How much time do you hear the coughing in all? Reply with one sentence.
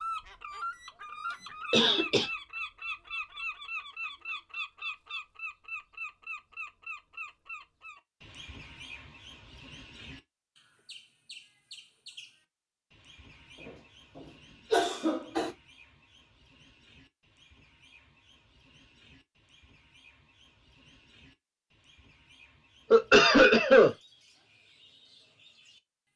The coughing can be heard for 2 seconds in total.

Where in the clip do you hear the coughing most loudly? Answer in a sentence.
The volume of the coughing peaks at 23 seconds.